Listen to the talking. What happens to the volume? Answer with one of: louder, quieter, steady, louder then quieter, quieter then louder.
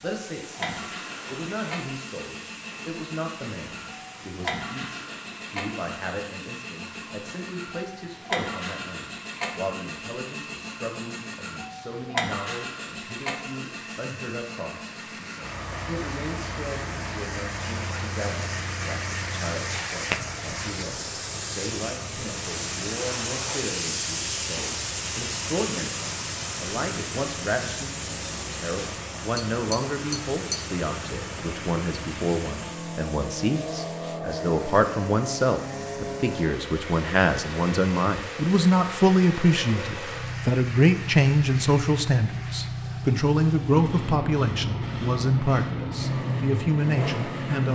louder.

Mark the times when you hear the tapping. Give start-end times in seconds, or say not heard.
29.4-30.6.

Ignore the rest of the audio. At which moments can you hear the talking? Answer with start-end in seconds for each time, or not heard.
0.0-47.7.